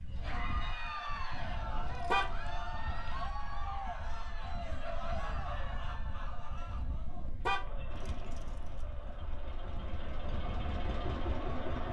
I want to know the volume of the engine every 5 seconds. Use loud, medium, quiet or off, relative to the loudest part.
off, medium, loud.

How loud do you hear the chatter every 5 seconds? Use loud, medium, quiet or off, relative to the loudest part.
loud, medium, loud.